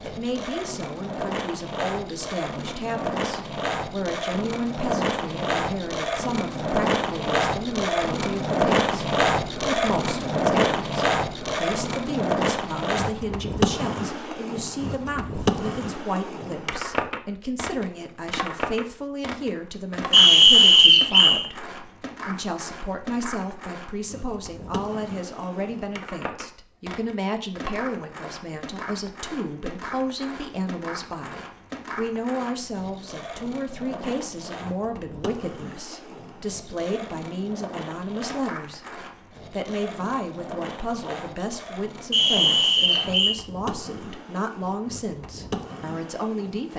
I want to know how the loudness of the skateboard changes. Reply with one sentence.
The loudness of the skateboard goes down.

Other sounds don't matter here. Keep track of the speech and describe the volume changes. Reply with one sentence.
The volume of the speech stays about the same.